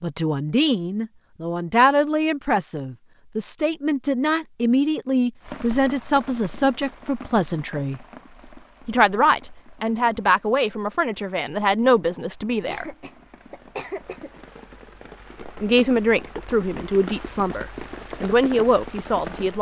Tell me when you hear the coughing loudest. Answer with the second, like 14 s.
14 s.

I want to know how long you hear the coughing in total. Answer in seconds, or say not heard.
2 s.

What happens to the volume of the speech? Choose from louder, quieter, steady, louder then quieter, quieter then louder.
steady.